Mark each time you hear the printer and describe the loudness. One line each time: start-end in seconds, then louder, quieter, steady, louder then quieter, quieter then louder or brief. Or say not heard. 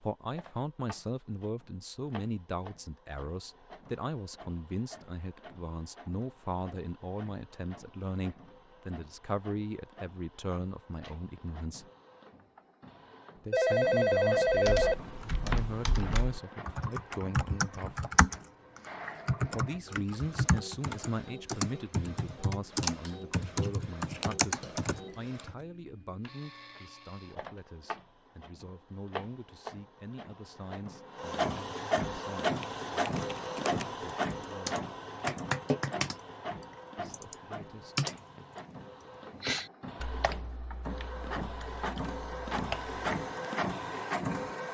0.0-44.6 louder.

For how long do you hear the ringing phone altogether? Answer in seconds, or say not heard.
2 s.